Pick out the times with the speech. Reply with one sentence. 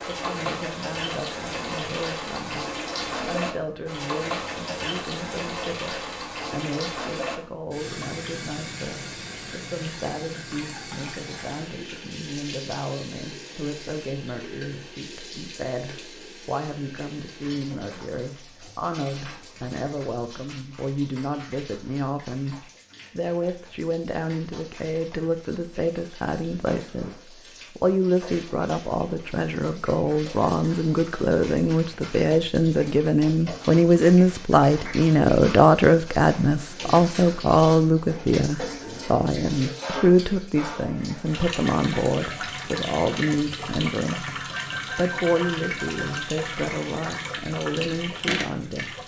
The speech can be heard from 0.0 to 49.0 s.